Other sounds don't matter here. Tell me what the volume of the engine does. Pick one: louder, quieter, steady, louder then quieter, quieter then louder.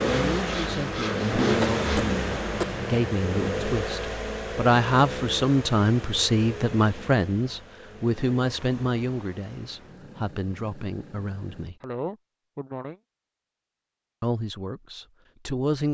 quieter.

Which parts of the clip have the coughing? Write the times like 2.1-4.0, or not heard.
1.6-2.9, 11.8-12.9.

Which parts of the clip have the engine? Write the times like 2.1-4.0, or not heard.
0.0-11.7.